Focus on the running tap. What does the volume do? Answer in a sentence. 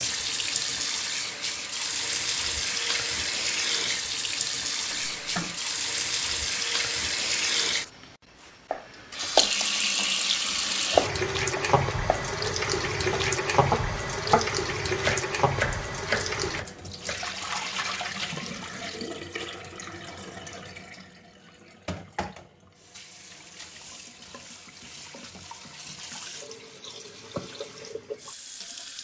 The loudness of the running tap goes down.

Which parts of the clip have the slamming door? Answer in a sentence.
You can hear the slamming door from 4.8 to 5.6 s.